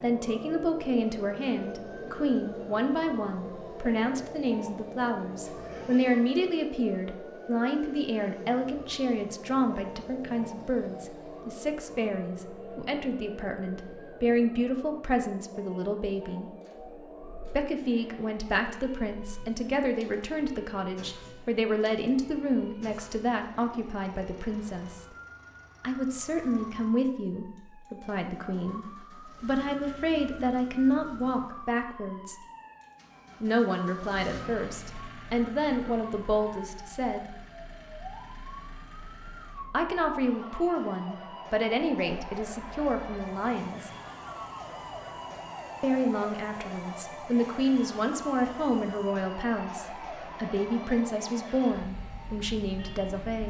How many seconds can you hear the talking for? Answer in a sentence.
You can hear the talking for 46 seconds altogether.